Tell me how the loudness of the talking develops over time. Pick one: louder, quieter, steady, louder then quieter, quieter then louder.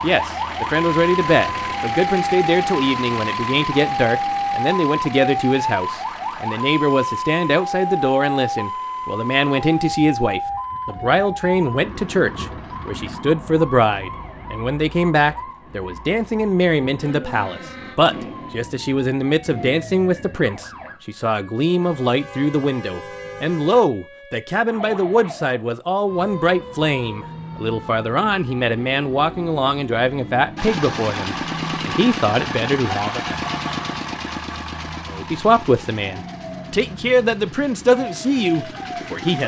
steady.